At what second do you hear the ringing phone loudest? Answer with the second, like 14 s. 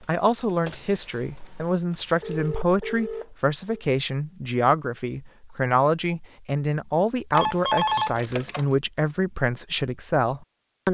8 s.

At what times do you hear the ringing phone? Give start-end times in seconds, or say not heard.
2.2-3.8, 7.3-8.7.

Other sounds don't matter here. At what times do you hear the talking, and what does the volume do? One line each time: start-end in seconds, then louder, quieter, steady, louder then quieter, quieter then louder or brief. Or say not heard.
0.1-10.8 steady.